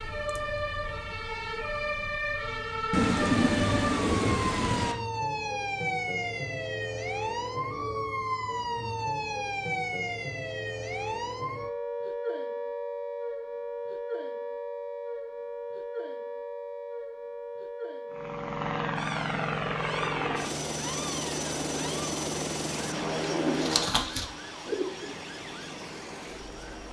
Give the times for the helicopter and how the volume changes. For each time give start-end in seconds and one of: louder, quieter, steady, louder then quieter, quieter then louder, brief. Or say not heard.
18.1-26.8 quieter.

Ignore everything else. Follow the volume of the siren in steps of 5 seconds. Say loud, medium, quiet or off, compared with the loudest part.
loud, loud, loud, medium, medium, quiet.